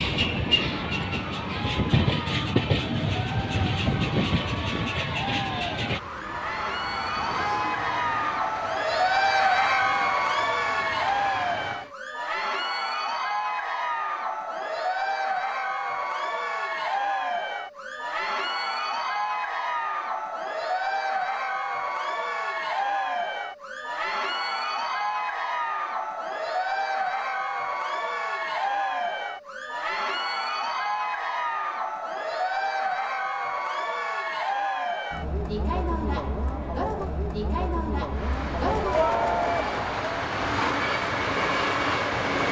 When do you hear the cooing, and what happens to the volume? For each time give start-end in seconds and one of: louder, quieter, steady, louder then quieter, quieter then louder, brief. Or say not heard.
not heard.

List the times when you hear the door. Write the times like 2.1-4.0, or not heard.
not heard.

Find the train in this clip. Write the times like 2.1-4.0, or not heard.
0.0-11.9, 38.1-42.4.